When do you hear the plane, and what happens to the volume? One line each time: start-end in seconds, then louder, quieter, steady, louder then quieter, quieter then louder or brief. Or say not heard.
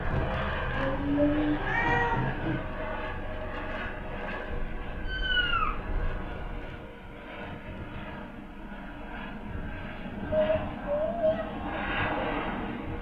0.0-12.9 quieter then louder.